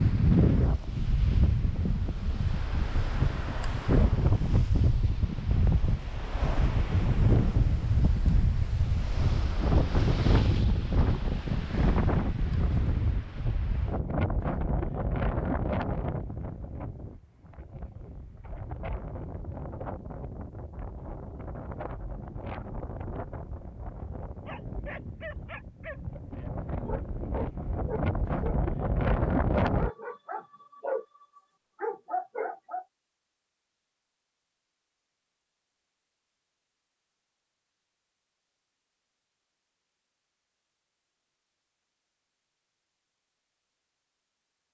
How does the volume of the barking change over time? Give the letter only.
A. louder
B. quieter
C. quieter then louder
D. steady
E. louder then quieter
A.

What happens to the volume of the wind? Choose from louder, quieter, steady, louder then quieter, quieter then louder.
quieter then louder.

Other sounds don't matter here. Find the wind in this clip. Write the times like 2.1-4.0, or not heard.
0.0-29.9.